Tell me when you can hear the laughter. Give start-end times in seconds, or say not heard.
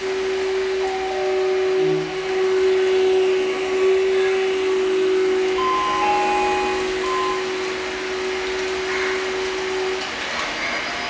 not heard.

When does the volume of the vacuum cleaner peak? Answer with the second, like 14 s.
3 s.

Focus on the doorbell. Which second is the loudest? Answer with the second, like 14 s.
6 s.